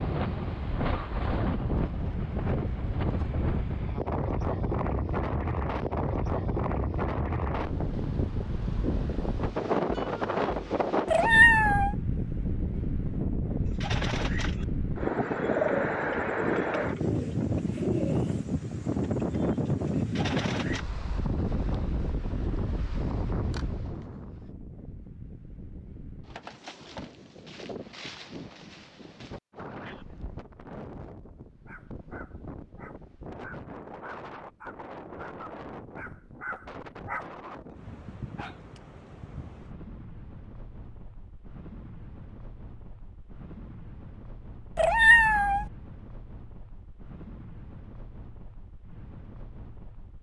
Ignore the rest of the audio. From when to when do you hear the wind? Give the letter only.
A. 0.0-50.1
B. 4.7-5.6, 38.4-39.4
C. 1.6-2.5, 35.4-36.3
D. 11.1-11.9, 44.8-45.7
A.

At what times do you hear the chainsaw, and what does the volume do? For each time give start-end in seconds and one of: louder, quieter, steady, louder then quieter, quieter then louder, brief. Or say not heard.
not heard.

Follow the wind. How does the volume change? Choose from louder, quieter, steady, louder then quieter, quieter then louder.
quieter.